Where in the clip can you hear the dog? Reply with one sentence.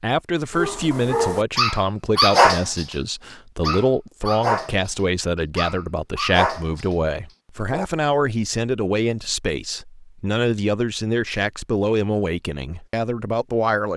The dog can be heard from 0.5 to 7.8 s.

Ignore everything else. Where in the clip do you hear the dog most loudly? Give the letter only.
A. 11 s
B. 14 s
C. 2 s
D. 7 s
C.